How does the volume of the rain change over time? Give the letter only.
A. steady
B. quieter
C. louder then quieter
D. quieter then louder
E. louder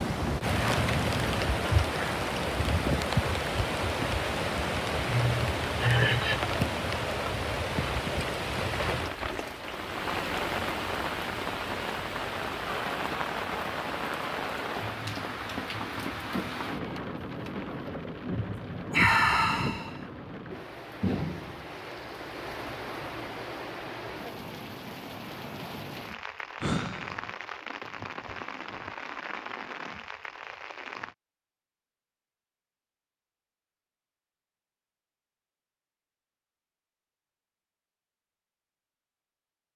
B.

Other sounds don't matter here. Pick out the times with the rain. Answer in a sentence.
You can hear the rain from 0.0 to 31.1 s.